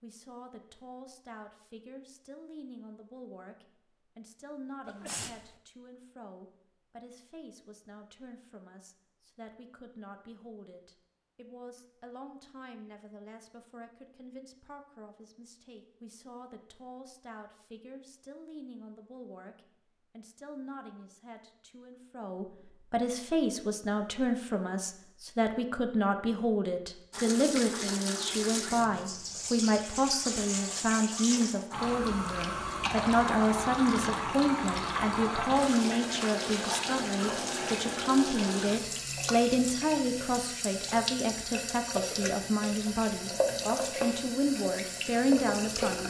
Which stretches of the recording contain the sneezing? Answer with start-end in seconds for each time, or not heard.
4.8-5.5.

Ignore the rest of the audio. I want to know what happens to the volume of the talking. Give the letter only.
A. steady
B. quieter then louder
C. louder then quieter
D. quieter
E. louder
E.